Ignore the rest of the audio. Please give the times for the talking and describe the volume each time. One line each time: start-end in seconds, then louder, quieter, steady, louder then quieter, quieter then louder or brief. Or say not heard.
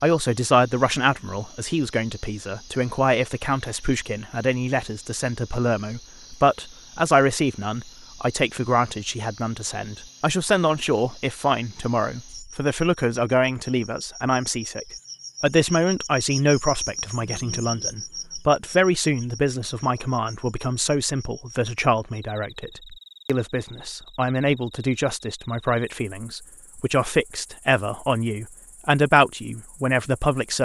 0.0-30.6 steady.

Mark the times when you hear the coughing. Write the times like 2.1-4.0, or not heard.
not heard.